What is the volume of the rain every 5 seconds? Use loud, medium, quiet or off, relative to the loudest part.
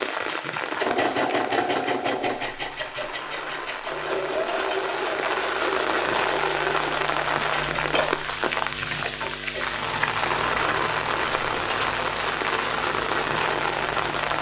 medium, loud, loud.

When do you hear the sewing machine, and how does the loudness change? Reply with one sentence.
The sewing machine can be heard from 0.0 to 14.3 s, getting quieter.